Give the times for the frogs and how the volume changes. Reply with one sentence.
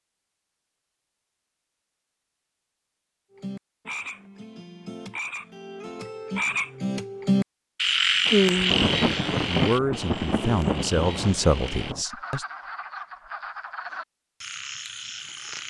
The frogs can be heard from 3.3 to 15.6 s, getting louder then quieter.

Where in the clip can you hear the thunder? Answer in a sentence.
The thunder can be heard from 8.2 to 12.1 s.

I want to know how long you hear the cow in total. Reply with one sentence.
You can't hear the cow here.